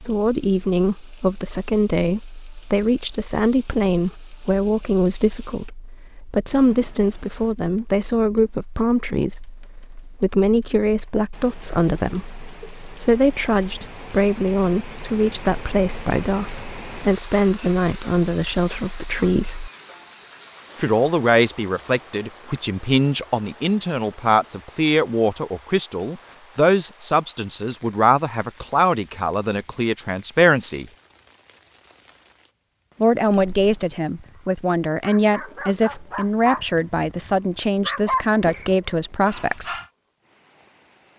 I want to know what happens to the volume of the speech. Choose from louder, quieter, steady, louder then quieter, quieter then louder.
steady.